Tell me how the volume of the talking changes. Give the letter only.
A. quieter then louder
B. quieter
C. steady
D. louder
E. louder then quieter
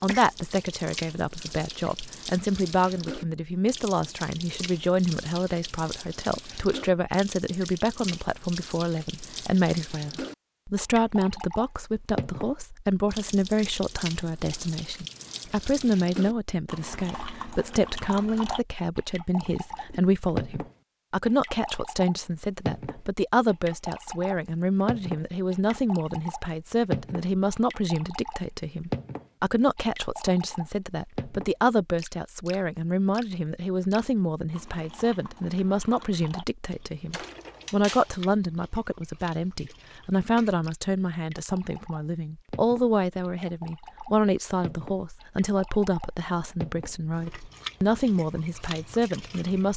C.